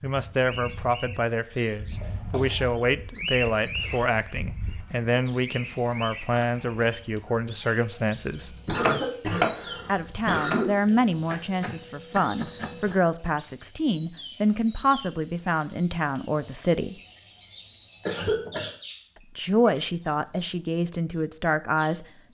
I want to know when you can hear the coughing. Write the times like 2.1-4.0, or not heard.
1.9-2.7, 8.7-10.7, 18.1-18.8.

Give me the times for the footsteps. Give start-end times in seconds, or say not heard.
not heard.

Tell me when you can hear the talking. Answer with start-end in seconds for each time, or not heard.
0.0-8.6, 9.8-16.9, 19.4-22.1.